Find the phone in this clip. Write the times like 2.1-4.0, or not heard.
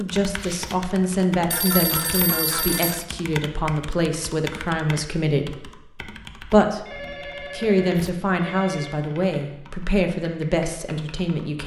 1.5-3.0, 6.8-8.9.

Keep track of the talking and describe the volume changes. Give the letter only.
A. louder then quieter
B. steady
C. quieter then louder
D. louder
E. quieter
B.